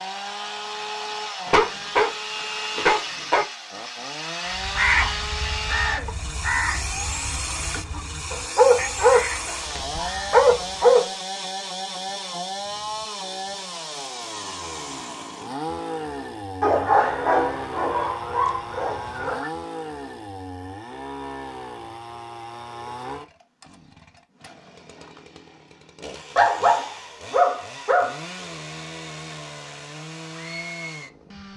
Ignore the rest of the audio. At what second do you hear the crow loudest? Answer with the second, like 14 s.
5 s.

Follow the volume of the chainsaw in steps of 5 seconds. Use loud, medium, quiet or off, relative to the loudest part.
loud, loud, loud, loud, medium, medium, medium.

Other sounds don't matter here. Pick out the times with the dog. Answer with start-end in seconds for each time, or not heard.
1.4-3.5, 8.3-11.1, 16.6-19.5, 26.4-28.1.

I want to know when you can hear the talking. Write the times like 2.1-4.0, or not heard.
not heard.